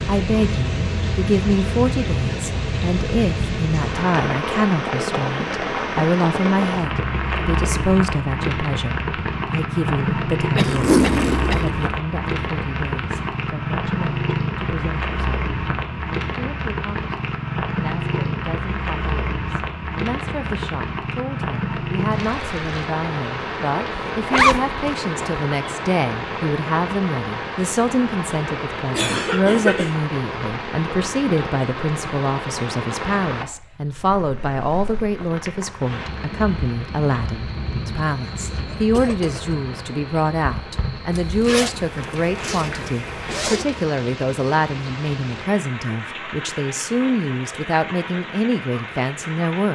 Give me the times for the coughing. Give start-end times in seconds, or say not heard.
10.6-11.7, 28.9-29.9, 38.4-39.4.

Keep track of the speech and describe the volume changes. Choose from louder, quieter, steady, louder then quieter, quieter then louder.
quieter then louder.